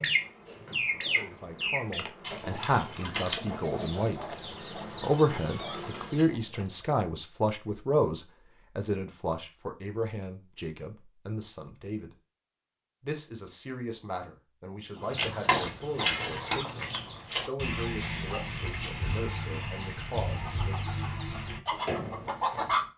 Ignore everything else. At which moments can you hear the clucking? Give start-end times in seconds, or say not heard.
0.0-7.0, 14.9-22.9.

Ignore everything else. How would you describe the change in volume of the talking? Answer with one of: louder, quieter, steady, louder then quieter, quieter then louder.
quieter.